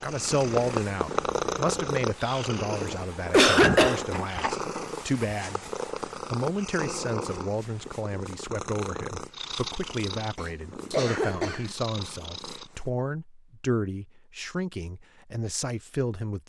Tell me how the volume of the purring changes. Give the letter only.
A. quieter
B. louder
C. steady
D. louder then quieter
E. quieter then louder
A.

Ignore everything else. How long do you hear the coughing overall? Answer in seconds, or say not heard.
3 s.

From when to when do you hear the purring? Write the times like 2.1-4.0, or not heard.
0.0-12.9.